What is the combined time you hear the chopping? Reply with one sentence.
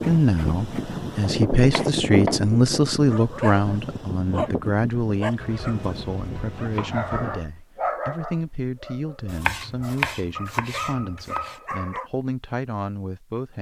You can hear the chopping for 7 seconds altogether.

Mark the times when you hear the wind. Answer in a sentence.
You can hear the wind from 0.0 to 7.3 s.